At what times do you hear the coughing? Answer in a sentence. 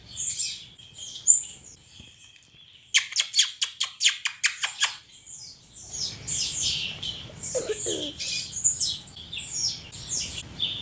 You can hear the coughing from 6.8 to 8.3 s.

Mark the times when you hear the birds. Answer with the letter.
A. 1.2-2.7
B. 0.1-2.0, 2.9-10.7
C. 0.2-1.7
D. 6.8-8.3
B.